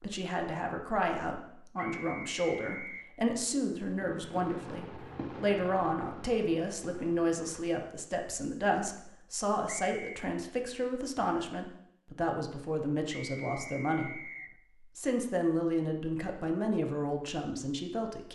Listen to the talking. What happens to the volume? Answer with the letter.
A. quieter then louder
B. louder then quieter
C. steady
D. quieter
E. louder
C.